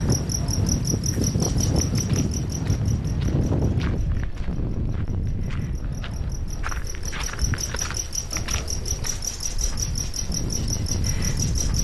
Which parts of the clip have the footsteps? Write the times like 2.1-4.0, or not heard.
1.9-9.3.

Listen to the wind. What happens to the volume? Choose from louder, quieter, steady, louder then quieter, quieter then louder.
quieter then louder.